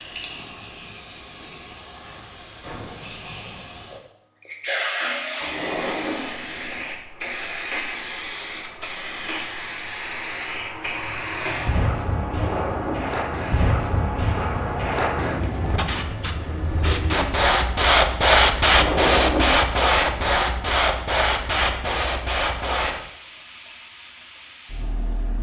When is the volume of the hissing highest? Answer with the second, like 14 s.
18 s.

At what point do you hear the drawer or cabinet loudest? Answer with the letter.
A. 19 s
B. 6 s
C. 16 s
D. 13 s
A.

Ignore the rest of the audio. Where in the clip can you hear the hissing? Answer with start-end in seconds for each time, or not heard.
0.0-25.3.